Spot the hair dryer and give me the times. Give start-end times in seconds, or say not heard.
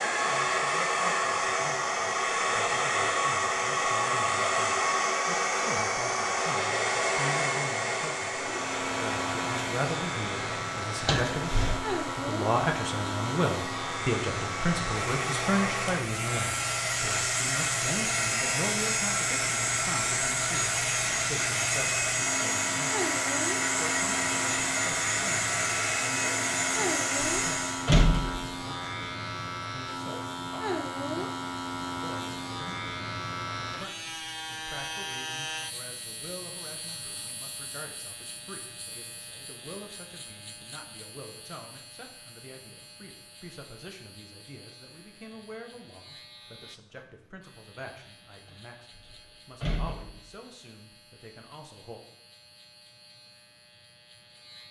0.0-27.9.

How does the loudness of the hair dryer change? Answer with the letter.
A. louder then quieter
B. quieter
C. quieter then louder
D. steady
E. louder
C.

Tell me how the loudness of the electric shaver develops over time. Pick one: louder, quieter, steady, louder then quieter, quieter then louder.
quieter.